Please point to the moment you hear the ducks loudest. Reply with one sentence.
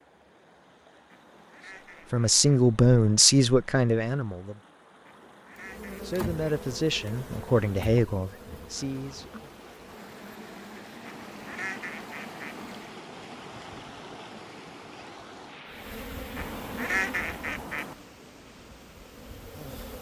The loudest moment of the ducks is at 17 seconds.